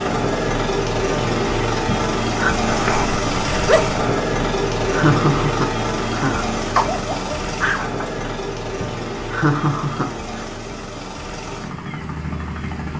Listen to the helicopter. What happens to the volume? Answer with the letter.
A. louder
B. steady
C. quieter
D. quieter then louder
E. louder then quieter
C.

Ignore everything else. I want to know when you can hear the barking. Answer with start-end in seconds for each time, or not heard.
2.6-4.2, 6.8-8.2.